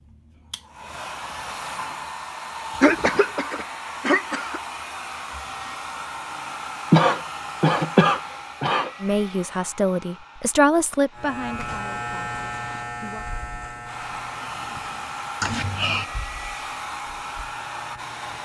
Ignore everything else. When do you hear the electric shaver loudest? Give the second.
12 s.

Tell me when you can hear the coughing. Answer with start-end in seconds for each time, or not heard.
2.8-4.6, 6.9-8.9, 15.4-16.1.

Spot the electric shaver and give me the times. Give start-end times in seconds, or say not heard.
11.2-18.4.